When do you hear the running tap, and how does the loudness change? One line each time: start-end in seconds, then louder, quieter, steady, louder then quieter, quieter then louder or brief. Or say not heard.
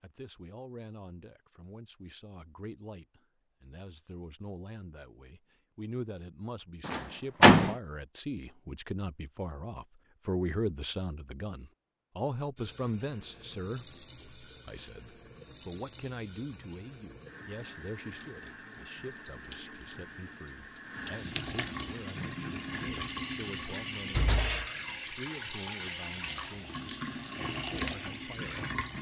12.6-28.9 louder.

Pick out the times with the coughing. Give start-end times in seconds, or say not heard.
not heard.